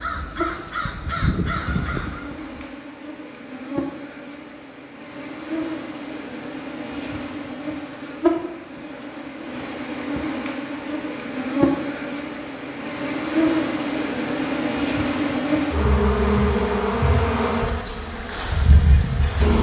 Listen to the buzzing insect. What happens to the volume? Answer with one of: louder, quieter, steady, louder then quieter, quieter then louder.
louder.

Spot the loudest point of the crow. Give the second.
1 s.